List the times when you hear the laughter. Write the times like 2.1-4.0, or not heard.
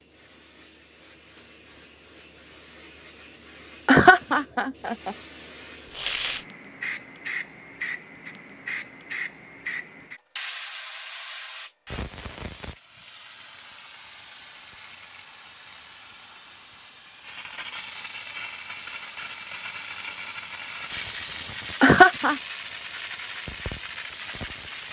3.9-5.2, 21.8-22.4.